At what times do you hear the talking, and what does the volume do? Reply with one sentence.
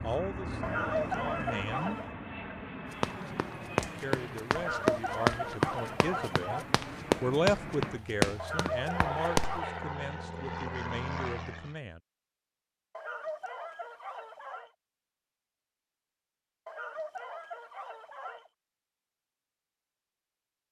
You can hear the talking briefly from 0.0 to 1.9 s; and from 3.8 to 12.0 s, getting louder then quieter.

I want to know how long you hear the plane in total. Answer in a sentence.
The plane can be heard for 12 seconds in total.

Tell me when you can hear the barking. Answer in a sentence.
You can hear the barking from 0.6 to 2.1 s, from 4.5 to 6.7 s, from 8.3 to 9.8 s, from 12.9 to 14.7 s and from 16.6 to 18.5 s.